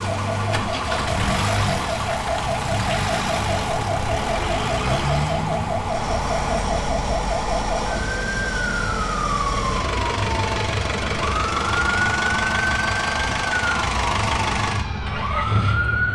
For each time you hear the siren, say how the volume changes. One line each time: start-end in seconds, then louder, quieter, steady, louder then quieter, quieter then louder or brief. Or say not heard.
0.0-16.1 steady.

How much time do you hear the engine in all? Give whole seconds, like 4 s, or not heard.
16 s.